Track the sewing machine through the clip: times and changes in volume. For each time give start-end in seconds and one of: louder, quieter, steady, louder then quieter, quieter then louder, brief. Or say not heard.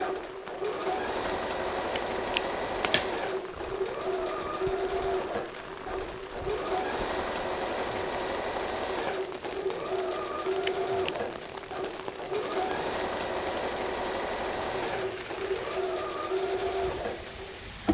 0.0-17.9 steady.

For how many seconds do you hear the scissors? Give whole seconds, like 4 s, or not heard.
2 s.